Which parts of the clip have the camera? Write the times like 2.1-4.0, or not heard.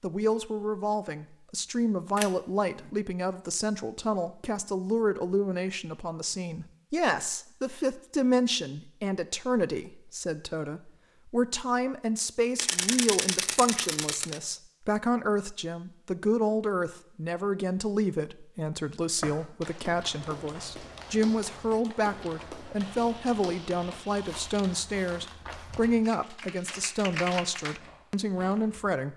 2.1-2.9, 12.6-14.4, 22.8-24.6.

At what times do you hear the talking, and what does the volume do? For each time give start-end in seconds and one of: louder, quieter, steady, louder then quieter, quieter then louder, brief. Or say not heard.
0.0-29.1 steady.